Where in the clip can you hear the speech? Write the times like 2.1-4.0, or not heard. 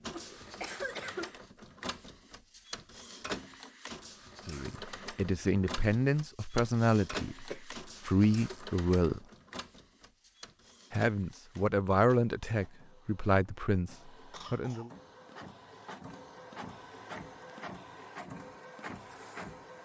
4.5-9.2, 10.9-14.9.